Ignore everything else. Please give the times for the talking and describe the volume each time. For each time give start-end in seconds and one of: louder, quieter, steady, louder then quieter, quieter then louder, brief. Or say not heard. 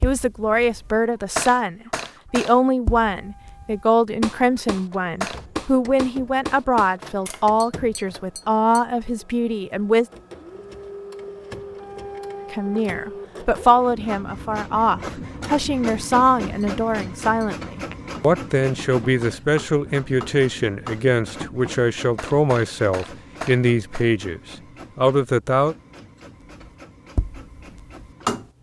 0.0-10.1 steady
12.5-25.8 steady.